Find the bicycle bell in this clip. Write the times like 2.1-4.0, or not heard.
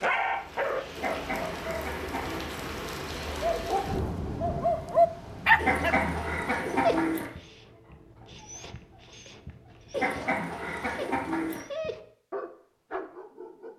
not heard.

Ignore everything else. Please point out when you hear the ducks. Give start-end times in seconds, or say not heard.
0.9-2.5, 5.5-7.3, 9.9-11.7.